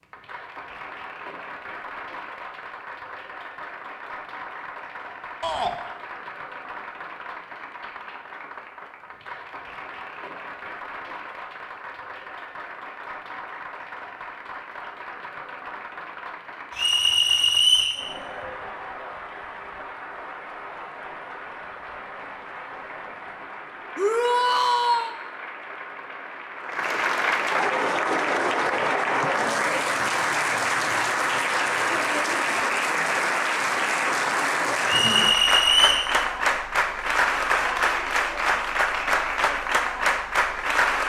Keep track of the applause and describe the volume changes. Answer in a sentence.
The volume of the applause goes up.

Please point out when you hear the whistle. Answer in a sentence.
You can hear the whistle from 16.8 to 18.0 s and from 34.9 to 36.1 s.